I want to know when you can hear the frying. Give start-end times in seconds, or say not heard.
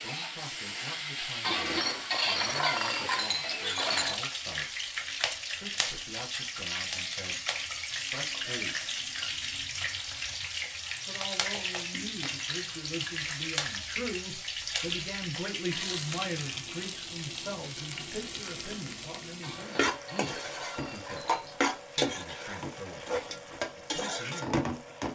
0.0-25.1.